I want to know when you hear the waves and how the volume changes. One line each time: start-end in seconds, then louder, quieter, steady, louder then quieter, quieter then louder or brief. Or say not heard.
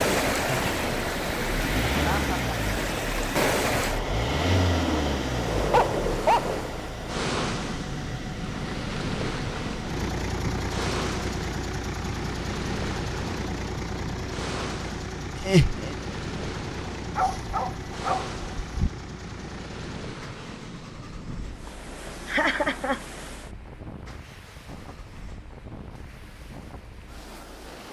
0.0-27.8 quieter.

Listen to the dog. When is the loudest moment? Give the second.
6 s.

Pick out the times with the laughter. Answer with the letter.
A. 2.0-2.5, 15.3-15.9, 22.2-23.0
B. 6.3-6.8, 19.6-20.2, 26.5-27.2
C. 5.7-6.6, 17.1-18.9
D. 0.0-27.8
A.